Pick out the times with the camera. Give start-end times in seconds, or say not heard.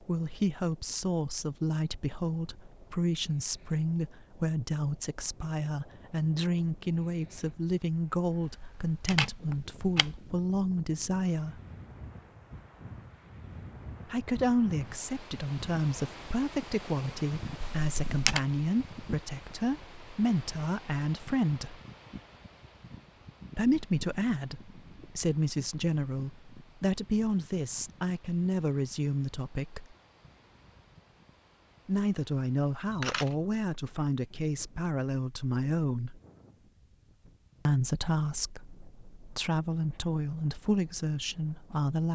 8.4-10.2, 17.6-18.4, 32.9-33.4.